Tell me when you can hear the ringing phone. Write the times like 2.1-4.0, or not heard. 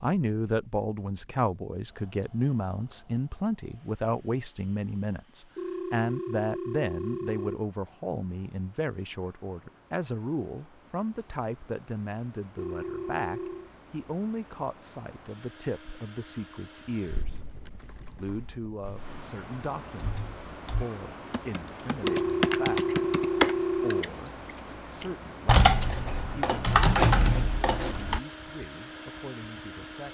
5.5-7.6, 12.6-13.7, 22.0-24.1.